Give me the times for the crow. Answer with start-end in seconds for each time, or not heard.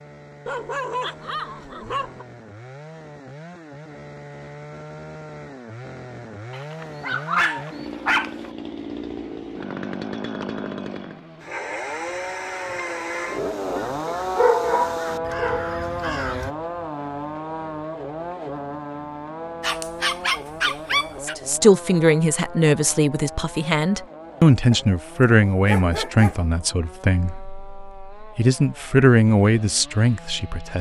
11.3-16.6.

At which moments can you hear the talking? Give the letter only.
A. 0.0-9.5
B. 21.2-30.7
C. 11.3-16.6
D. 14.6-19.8
B.